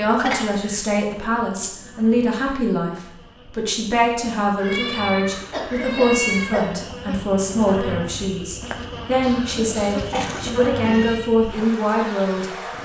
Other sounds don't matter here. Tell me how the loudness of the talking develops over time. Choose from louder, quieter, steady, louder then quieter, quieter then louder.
steady.